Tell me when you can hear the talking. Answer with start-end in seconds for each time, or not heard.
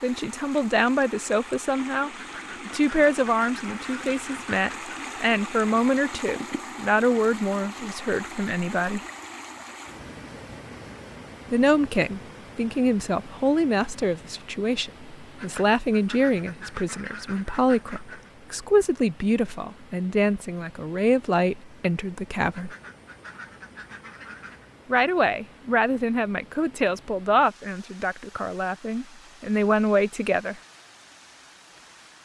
0.0-9.0, 11.5-22.7, 24.9-30.6.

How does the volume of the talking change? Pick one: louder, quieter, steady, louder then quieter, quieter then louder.
steady.